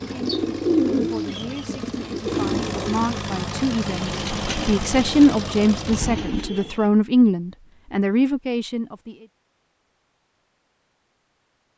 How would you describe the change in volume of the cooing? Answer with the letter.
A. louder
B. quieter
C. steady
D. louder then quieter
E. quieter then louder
B.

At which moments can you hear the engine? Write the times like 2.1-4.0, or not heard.
0.0-6.0.